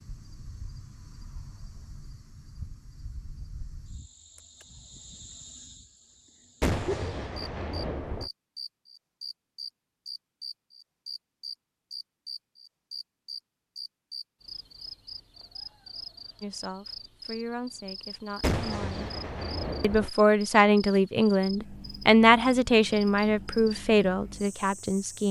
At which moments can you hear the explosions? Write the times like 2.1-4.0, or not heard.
6.6-8.3, 18.4-20.1.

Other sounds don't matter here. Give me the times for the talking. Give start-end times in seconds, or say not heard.
16.4-19.1, 19.8-25.2.